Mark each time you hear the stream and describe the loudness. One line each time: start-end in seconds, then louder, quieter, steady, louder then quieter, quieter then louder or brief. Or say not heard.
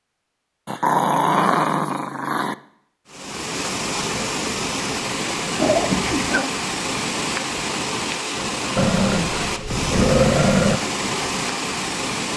3.0-12.3 steady.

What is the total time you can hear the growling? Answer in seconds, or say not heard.
5 s.